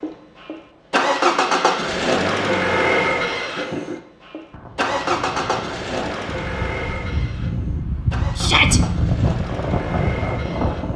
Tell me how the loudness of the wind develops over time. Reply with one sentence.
The volume of the wind goes up.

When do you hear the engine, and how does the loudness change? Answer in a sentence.
The engine can be heard from 0.0 to 10.9 s, getting quieter.